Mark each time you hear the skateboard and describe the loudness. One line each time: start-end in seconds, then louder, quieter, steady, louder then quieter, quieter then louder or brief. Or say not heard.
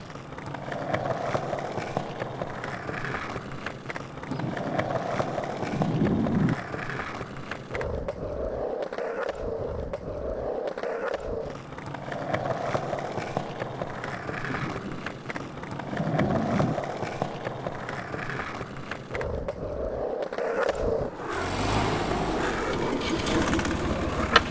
0.0-24.4 steady.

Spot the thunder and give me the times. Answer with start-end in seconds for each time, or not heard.
4.2-6.5, 14.4-16.8.